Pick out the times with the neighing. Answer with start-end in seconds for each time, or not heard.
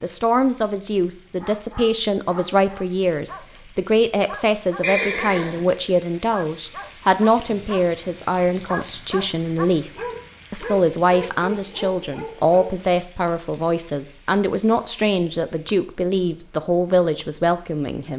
4.8-5.7.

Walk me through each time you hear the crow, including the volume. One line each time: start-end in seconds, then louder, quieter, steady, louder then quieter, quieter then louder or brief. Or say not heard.
not heard.